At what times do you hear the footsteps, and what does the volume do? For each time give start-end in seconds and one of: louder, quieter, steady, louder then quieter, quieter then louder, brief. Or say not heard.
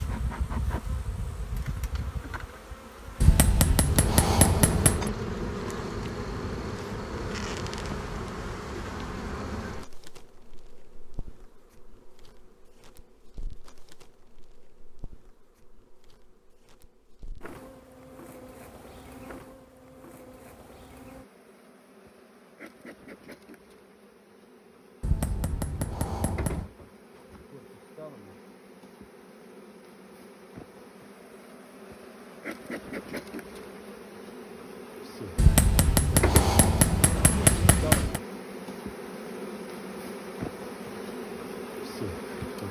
not heard.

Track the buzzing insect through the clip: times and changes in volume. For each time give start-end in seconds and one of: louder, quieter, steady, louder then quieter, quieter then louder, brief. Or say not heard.
0.0-42.6 quieter then louder.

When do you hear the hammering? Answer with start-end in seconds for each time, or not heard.
3.2-5.1, 25.0-26.7, 35.4-38.2.